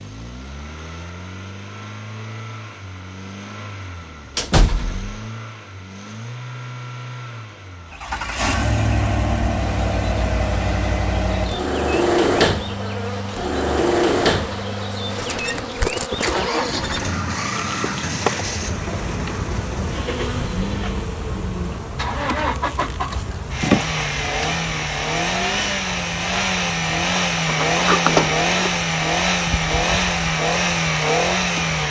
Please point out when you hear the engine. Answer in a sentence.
The engine can be heard from 0.0 to 31.8 s.